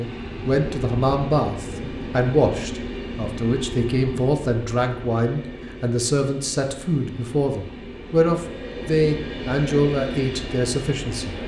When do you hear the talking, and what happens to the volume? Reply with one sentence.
You can hear the talking from 0.0 to 11.3 s, at a steady volume.